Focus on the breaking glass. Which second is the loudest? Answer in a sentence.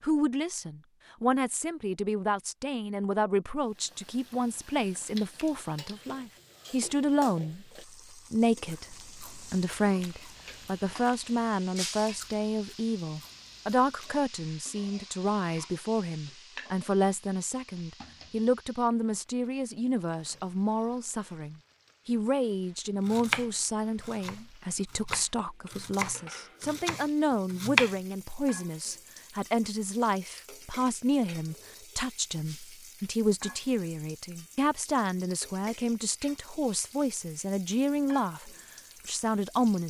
The loudest moment of the breaking glass is at 12 seconds.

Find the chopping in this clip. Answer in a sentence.
You can hear the chopping from 23.1 to 27.9 s.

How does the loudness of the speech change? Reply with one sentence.
The loudness of the speech stays about the same.